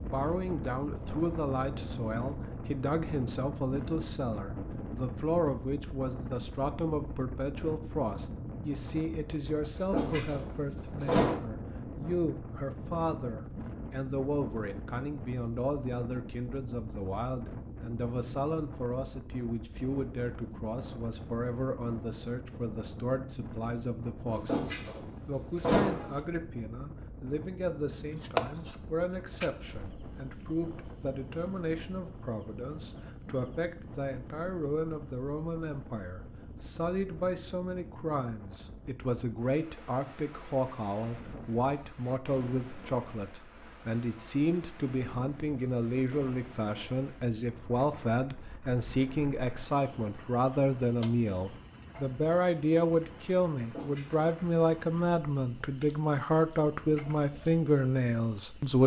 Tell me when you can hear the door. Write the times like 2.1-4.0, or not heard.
9.8-11.4, 24.3-26.2, 53.5-54.2.